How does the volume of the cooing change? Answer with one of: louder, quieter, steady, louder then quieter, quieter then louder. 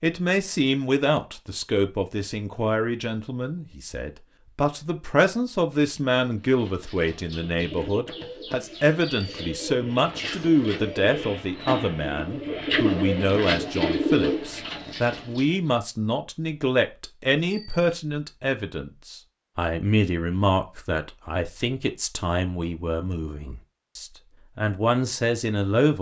louder.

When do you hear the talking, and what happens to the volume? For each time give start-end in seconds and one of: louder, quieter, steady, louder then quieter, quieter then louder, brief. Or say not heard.
0.0-25.9 steady.